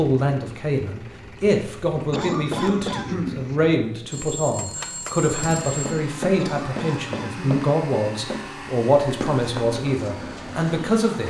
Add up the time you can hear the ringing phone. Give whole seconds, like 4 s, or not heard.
2 s.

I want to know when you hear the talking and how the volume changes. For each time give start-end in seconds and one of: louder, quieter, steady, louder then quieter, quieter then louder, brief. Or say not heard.
0.0-11.2 steady.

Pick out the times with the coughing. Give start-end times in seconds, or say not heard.
2.1-3.5, 6.3-7.6.